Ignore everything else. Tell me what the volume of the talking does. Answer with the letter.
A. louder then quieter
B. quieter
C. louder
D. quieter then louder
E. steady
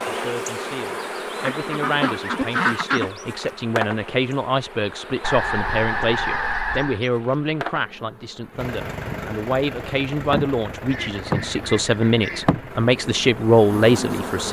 C.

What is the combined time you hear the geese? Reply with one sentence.
You can hear the geese for 5 seconds altogether.